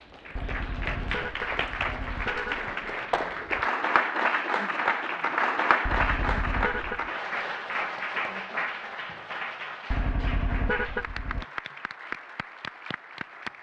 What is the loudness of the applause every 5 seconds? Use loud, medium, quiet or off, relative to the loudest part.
loud, loud, medium.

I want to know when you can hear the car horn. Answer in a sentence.
You can hear the car horn from 0.3 to 2.6 s, from 5.8 to 7.1 s and from 9.9 to 11.4 s.